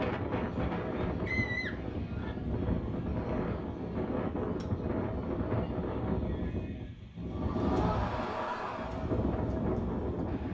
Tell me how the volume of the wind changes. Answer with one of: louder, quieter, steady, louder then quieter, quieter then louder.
steady.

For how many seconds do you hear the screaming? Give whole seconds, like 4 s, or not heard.
2 s.